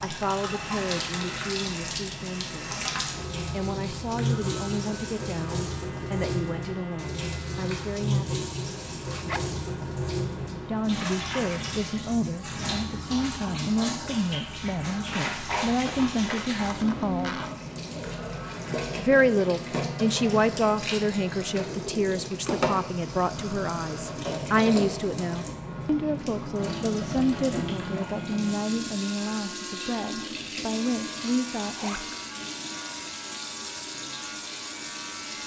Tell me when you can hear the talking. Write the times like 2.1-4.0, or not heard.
0.0-2.8, 3.5-8.4, 10.7-17.4, 18.9-32.0.